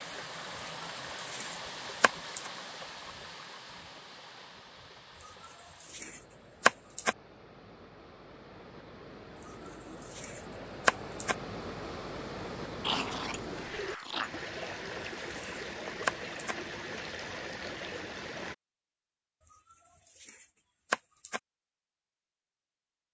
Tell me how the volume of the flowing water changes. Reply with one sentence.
The loudness of the flowing water goes down, then up.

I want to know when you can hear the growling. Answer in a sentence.
You can hear the growling from 12.8 to 14.3 s.